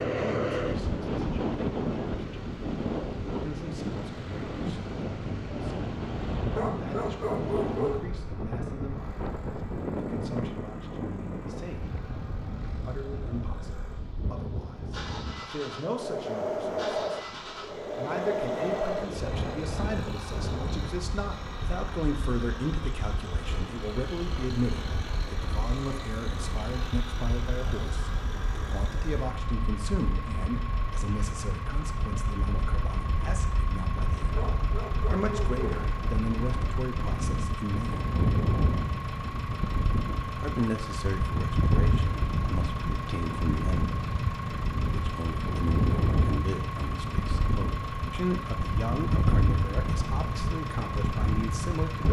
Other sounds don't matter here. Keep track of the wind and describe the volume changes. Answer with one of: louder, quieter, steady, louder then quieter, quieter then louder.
quieter then louder.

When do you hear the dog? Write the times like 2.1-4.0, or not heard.
6.5-8.1, 34.3-35.9.